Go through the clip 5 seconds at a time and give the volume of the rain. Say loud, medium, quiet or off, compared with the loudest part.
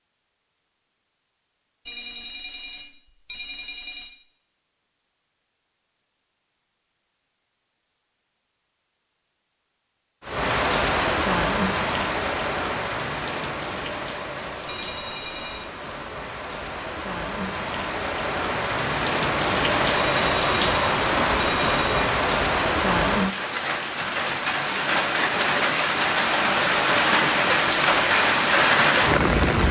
off, off, medium, medium, loud, loud.